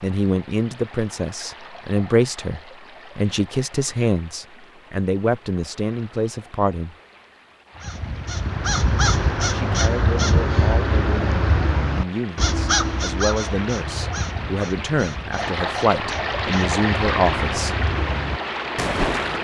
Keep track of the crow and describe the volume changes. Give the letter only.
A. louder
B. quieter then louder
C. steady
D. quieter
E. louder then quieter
B.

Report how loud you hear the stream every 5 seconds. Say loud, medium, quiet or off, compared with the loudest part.
quiet, quiet, medium, loud.